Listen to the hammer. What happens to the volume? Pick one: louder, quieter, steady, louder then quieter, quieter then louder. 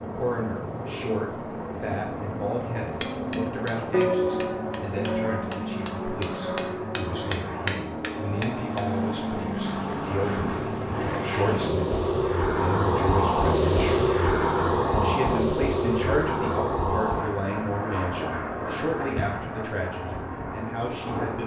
quieter then louder.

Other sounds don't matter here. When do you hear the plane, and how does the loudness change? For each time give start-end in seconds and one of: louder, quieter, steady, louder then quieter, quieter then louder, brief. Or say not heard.
0.0-21.4 louder then quieter.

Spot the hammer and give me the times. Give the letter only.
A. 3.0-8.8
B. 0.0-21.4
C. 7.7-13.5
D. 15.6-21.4
A.